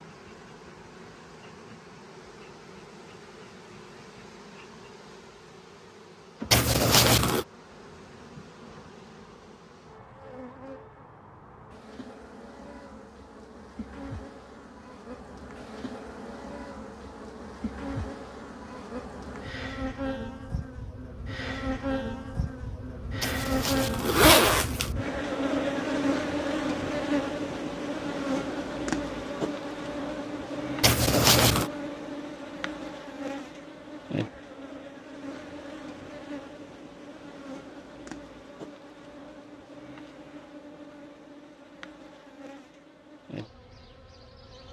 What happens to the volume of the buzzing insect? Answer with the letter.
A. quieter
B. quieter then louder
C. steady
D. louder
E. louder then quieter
E.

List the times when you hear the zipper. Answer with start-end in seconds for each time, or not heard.
6.5-7.5, 23.2-24.9, 30.8-31.7.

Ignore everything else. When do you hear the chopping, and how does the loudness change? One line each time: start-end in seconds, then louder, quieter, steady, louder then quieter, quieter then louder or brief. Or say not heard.
not heard.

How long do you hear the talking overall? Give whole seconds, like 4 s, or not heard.
not heard.